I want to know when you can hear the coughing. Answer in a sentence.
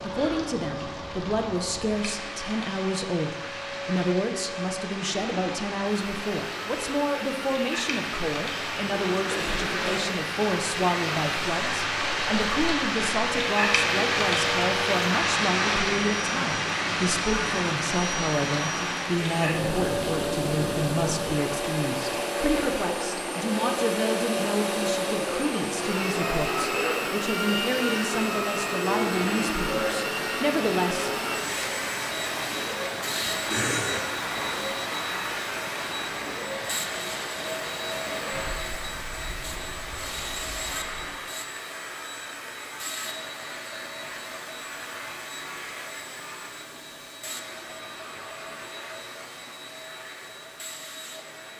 The coughing can be heard from 9.3 to 10.1 s and from 33.5 to 34.1 s.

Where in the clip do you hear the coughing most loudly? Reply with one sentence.
The volume of the coughing peaks at 34 seconds.